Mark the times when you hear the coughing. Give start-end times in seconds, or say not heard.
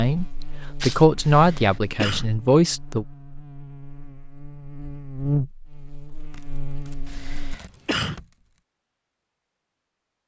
1.1-2.2, 7.0-8.2.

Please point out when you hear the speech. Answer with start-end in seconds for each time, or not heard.
0.0-3.0.